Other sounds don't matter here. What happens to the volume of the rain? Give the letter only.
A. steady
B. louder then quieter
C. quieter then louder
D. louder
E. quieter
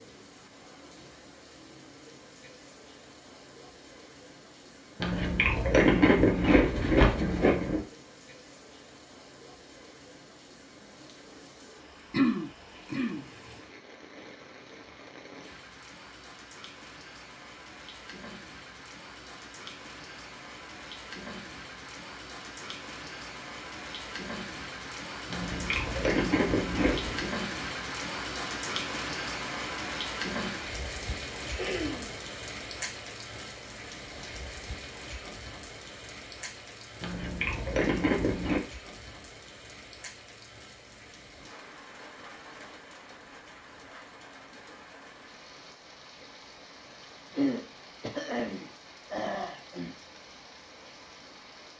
B.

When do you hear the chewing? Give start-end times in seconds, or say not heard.
5.0-7.8, 25.3-27.3, 37.0-38.6.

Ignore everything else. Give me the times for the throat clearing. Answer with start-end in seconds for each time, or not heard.
12.1-13.2, 31.6-32.1, 47.3-50.0.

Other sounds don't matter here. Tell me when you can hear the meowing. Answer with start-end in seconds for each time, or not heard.
not heard.